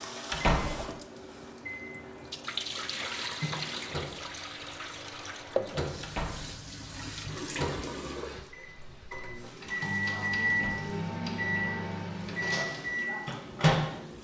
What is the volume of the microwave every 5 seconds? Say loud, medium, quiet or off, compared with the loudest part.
quiet, medium, loud.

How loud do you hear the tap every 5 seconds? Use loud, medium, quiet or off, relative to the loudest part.
loud, loud, medium.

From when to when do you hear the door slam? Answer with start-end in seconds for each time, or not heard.
0.3-0.8, 6.0-6.5, 10.5-10.9.